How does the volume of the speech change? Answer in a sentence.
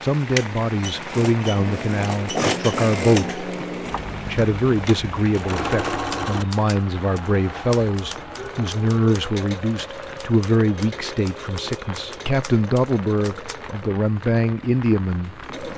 The loudness of the speech stays about the same.